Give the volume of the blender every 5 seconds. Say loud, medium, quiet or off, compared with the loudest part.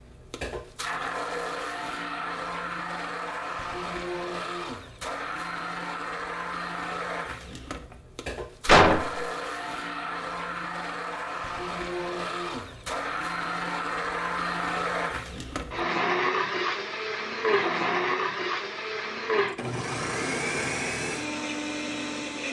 medium, medium, loud, loud, loud.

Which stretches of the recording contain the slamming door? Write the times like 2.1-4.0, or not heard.
8.7-9.2.